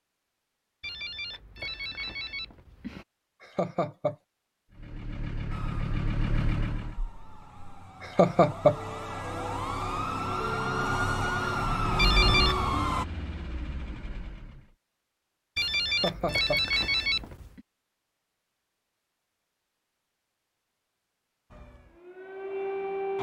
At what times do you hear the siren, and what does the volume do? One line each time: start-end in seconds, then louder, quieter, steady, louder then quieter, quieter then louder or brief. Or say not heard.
5.5-13.1 louder
21.5-23.1 brief.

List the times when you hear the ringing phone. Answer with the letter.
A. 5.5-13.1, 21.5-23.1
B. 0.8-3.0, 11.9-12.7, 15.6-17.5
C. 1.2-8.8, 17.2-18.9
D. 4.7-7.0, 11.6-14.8
B.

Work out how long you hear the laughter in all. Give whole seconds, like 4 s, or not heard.
2 s.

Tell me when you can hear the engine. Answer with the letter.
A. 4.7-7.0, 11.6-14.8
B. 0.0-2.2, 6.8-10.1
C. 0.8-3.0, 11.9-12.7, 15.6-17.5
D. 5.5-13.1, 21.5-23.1
A.